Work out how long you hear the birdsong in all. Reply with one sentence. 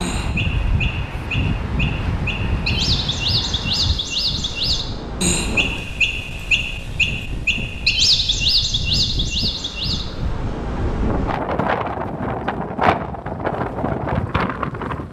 The birdsong can be heard for 10 seconds in total.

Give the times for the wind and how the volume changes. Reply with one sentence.
You can hear the wind from 0.0 to 15.0 s, getting quieter then louder.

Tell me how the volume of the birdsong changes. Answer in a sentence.
The loudness of the birdsong goes up.